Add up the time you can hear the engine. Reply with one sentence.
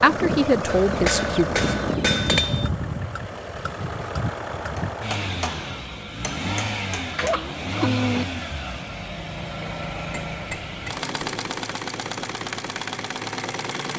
You can hear the engine for 14 seconds altogether.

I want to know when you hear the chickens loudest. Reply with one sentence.
The volume of the chickens peaks at 8 seconds.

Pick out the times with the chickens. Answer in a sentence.
You can hear the chickens from 0.0 to 2.5 s and from 7.2 to 8.2 s.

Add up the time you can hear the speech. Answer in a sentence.
You can hear the speech for 2 seconds altogether.